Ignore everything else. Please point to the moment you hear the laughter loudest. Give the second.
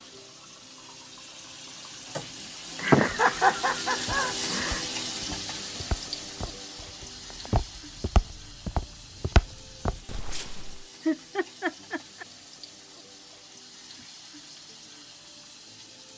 3 s.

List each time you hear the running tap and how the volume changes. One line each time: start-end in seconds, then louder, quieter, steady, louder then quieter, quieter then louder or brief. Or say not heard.
0.0-16.1 louder then quieter.